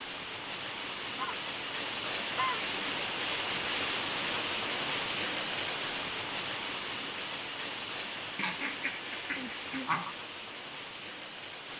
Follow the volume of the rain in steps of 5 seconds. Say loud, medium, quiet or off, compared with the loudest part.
loud, loud, medium.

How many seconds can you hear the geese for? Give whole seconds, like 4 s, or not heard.
3 s.